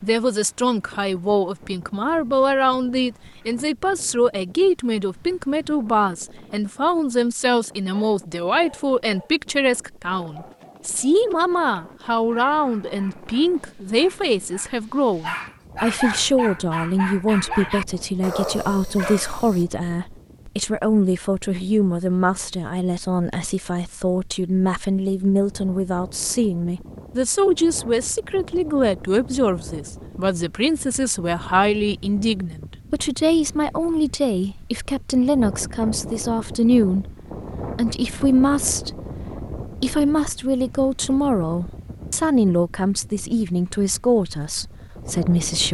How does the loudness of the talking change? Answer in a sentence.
The loudness of the talking stays about the same.